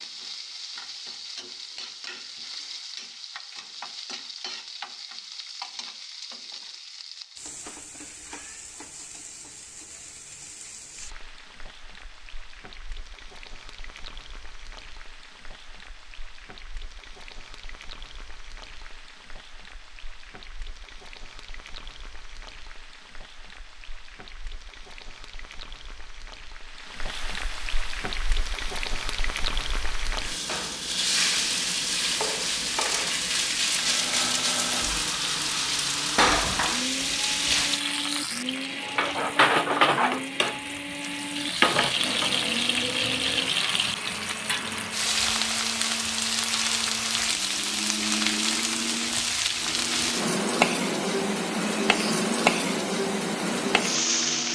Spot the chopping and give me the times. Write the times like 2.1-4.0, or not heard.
not heard.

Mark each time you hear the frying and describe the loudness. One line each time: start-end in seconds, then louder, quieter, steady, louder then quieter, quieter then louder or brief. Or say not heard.
0.0-54.5 quieter then louder.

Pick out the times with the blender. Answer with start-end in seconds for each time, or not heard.
33.6-54.5.